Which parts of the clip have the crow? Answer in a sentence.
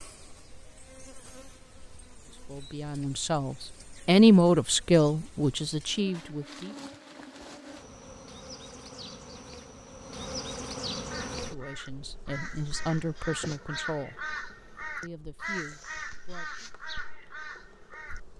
You can hear the crow from 11.1 to 18.2 s.